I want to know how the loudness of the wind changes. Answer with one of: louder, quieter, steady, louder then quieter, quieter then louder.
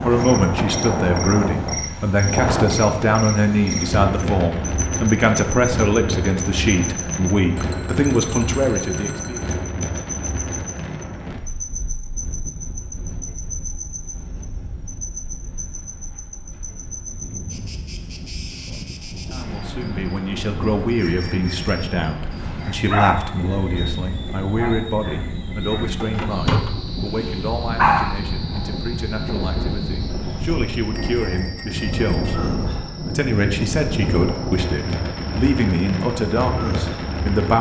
quieter then louder.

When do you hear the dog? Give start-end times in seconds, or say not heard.
22.6-28.1.